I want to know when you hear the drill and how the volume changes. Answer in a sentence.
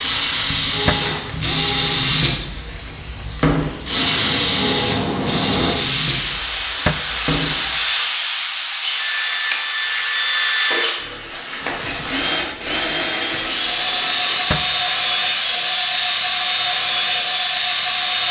The drill can be heard from 0.0 to 18.2 s, at a steady volume.